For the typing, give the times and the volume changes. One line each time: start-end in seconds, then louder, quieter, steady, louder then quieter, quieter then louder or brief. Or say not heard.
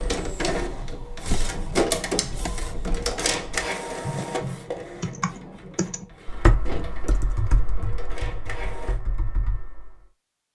0.0-10.1 louder then quieter.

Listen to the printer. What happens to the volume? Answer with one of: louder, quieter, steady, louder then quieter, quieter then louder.
quieter.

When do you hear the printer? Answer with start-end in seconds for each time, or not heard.
0.0-9.0.